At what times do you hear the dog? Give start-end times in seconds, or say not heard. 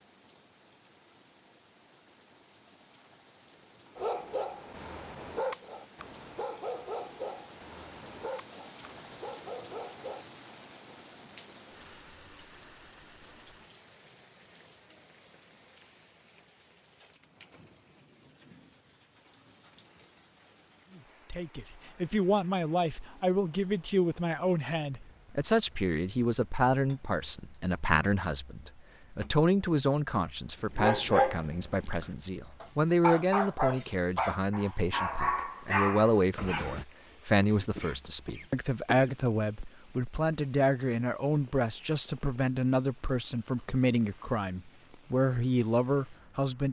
4.0-10.2, 30.6-36.9.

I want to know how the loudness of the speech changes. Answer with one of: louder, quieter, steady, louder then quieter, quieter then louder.
steady.